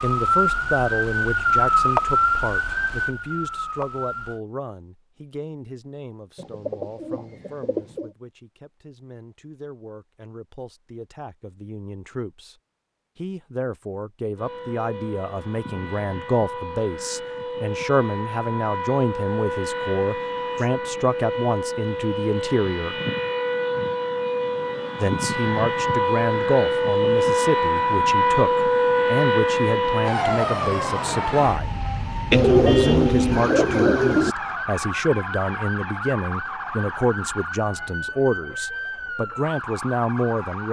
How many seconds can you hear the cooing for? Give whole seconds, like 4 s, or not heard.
4 s.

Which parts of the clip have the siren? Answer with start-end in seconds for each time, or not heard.
0.0-4.4, 14.3-40.6.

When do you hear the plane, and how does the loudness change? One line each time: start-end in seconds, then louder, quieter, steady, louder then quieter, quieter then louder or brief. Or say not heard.
not heard.